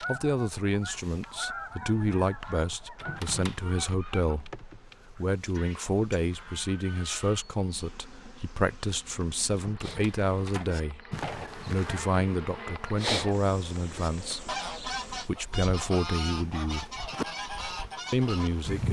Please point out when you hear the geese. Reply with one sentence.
You can hear the geese from 0.0 to 7.4 s and from 9.8 to 18.8 s.